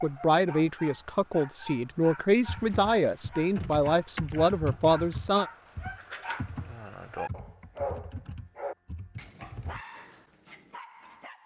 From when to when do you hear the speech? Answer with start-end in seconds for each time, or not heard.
0.0-5.5.